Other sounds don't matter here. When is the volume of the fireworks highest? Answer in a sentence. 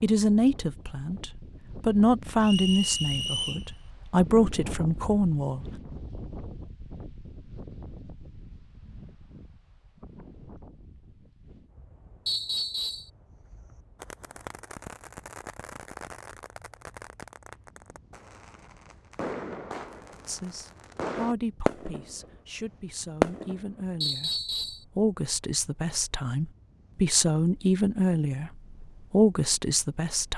The volume of the fireworks peaks at 23 seconds.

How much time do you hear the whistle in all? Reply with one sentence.
You can hear the whistle for 3 seconds altogether.